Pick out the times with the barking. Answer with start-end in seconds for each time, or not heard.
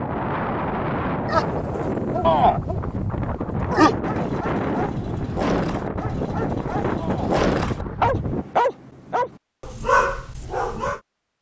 1.2-11.0.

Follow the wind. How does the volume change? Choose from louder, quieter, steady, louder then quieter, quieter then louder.
steady.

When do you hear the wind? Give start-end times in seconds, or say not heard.
0.0-8.4.